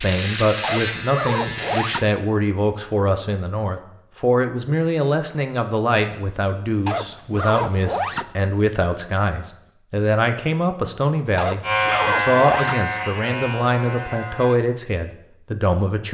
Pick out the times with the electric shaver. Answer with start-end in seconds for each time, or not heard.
0.0-2.0, 11.6-14.6.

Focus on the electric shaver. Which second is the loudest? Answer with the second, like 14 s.
12 s.